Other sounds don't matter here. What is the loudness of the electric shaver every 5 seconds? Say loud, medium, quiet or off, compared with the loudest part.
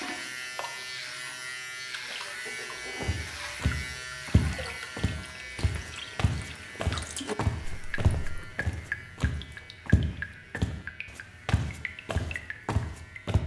loud, medium, quiet.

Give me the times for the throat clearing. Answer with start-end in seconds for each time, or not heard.
2.5-3.1.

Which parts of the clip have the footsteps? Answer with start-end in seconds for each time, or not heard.
3.0-13.4.